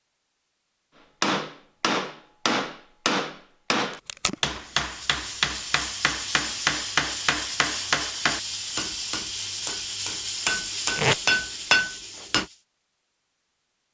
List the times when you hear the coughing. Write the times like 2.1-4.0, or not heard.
not heard.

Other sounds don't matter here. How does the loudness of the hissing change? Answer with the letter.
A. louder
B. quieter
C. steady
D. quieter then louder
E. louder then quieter
C.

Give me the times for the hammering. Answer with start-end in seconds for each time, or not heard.
1.2-12.4.